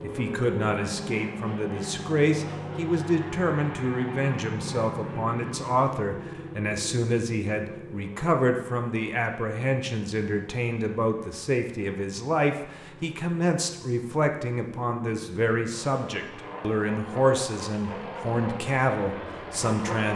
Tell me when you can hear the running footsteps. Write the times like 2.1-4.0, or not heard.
not heard.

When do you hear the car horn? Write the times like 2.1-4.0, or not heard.
not heard.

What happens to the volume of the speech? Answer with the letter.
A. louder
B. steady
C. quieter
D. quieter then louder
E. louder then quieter
B.